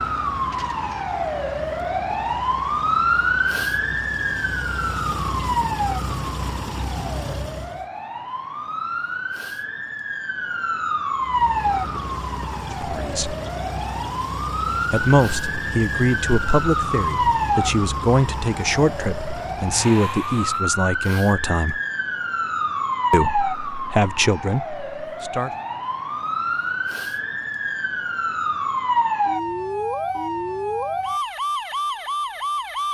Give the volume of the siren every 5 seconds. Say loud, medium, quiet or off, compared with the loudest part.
loud, medium, loud, loud, loud, loud, loud.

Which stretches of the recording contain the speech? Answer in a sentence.
You can hear the speech from 12.8 to 13.3 s, from 14.9 to 21.8 s and from 23.1 to 25.5 s.